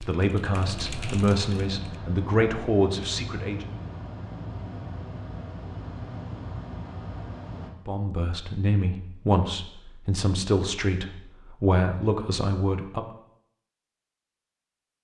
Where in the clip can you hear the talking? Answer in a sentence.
The talking can be heard from 0.0 to 3.7 s and from 7.8 to 13.1 s.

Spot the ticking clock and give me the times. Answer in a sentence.
You can't hear the ticking clock here.